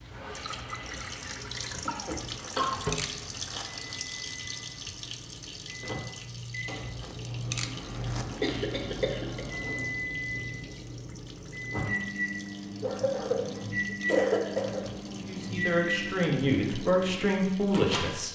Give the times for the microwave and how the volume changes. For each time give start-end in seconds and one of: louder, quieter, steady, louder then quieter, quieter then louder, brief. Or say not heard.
0.2-18.2 louder.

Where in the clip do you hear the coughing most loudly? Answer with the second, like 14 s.
14 s.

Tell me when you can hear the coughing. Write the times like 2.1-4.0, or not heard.
1.9-2.8, 8.4-9.4, 12.8-14.8.